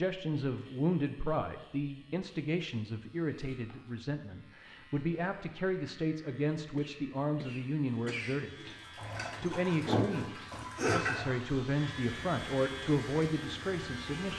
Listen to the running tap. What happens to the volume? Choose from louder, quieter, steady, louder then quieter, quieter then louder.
quieter.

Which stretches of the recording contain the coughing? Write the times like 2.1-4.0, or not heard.
6.8-8.4.